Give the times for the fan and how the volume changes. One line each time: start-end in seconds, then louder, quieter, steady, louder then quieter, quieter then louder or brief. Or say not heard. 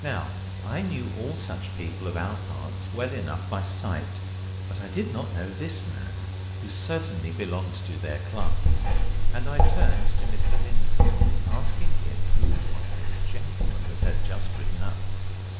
0.0-15.5 steady.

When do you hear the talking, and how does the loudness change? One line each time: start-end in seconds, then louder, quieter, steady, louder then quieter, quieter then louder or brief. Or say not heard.
0.0-15.2 quieter.